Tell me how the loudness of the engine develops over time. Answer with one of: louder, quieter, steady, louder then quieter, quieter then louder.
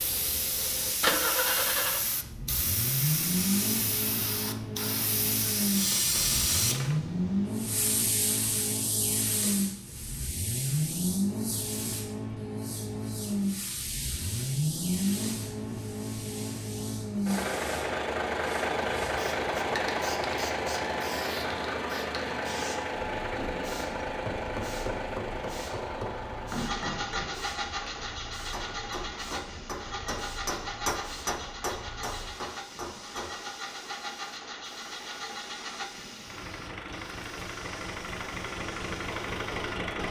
quieter.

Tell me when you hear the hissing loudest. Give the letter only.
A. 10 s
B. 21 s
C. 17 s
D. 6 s
D.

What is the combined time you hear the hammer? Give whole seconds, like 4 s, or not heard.
10 s.